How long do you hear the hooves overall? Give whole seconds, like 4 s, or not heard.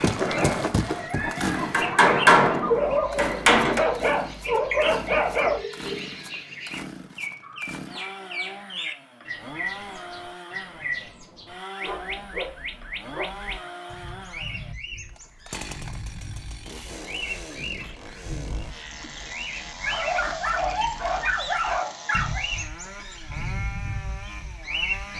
2 s.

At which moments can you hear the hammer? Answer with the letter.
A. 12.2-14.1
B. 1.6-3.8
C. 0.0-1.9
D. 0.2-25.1
B.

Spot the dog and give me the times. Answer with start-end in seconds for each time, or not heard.
2.6-5.6, 11.8-13.6, 19.9-22.4.